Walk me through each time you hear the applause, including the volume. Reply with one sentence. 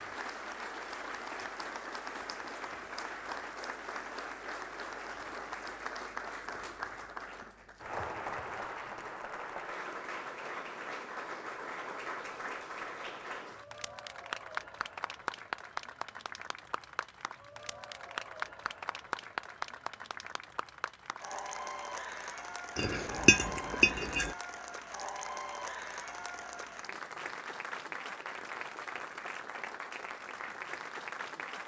The applause can be heard from 0.0 to 31.6 s, at a steady volume.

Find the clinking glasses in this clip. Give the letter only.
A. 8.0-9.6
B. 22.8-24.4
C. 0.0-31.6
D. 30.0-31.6
B.